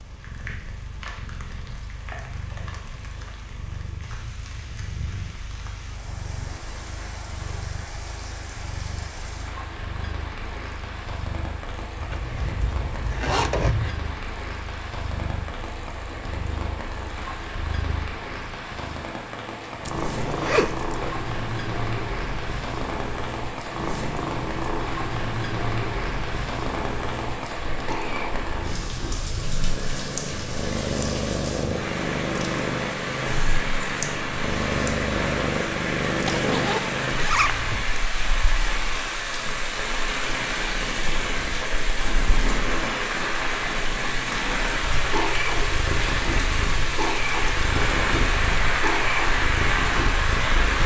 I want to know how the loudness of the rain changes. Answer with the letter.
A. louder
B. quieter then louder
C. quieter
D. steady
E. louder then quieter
A.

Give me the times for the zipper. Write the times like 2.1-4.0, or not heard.
12.0-13.9, 20.1-21.1, 36.2-38.0.